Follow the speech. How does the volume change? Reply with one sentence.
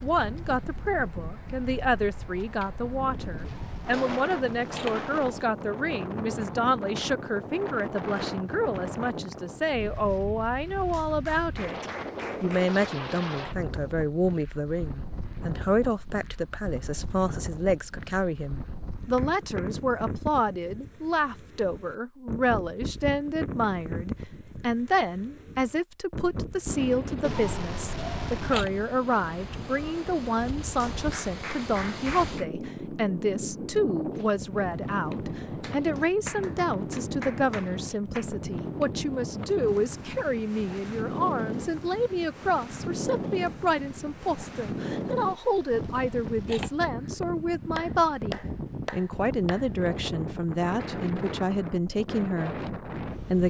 The volume of the speech stays about the same.